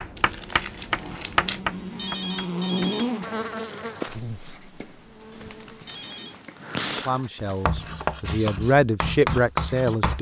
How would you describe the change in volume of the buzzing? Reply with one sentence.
The loudness of the buzzing goes up, then down.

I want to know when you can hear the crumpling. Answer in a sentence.
You can hear the crumpling from 0.1 to 1.6 s and from 5.4 to 8.1 s.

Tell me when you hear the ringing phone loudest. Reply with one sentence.
The loudest moment of the ringing phone is at 2 seconds.